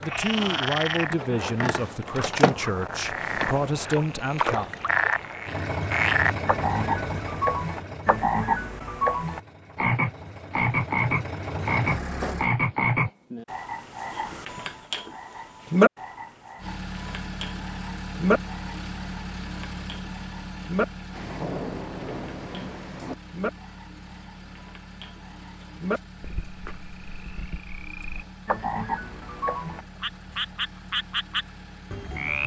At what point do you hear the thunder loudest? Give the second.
22 s.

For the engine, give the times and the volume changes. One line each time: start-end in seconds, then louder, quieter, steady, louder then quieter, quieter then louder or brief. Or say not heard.
5.5-12.5 quieter then louder
16.6-32.4 quieter.